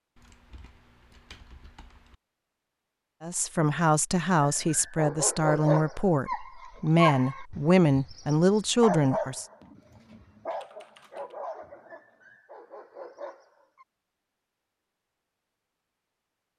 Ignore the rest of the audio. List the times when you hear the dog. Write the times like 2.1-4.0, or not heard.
4.4-13.8.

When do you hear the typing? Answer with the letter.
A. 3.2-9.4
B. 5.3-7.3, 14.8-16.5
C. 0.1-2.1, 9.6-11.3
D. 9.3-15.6
C.